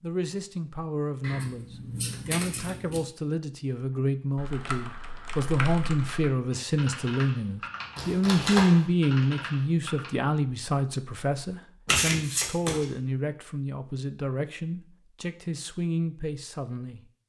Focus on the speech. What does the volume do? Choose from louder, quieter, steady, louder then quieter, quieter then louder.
louder then quieter.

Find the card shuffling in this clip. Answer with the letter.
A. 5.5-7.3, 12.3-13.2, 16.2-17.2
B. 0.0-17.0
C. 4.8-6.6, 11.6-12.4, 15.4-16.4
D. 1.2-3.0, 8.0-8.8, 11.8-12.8
D.